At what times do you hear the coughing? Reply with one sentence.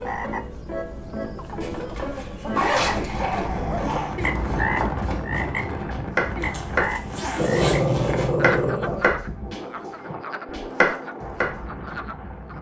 You can't hear the coughing here.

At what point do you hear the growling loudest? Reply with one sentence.
The volume of the growling peaks at 8 seconds.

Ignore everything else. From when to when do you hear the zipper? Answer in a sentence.
The zipper can be heard from 1.6 to 3.5 s and from 6.4 to 8.3 s.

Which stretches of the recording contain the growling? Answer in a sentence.
The growling can be heard from 2.8 to 4.2 s and from 7.3 to 9.1 s.